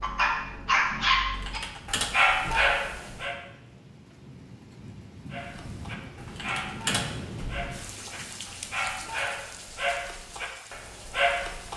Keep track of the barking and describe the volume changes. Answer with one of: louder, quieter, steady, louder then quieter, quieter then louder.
quieter then louder.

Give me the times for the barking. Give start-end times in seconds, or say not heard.
0.0-3.4, 5.3-11.7.